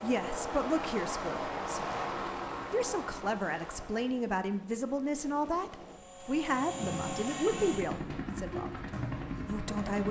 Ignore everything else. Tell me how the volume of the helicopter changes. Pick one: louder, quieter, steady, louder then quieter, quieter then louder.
quieter then louder.